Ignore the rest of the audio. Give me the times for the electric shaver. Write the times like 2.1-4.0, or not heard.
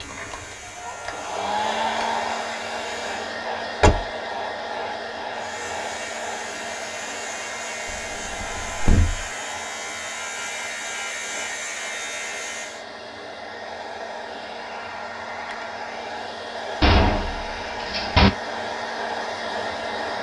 0.0-3.2, 5.3-12.8.